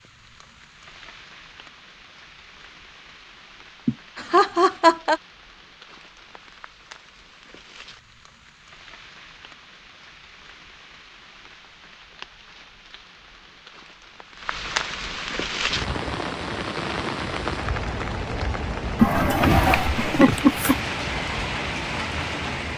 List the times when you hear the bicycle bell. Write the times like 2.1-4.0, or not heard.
not heard.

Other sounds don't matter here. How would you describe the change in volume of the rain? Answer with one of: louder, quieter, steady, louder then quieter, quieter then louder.
louder.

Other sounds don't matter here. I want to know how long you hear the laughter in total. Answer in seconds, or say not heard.
3 s.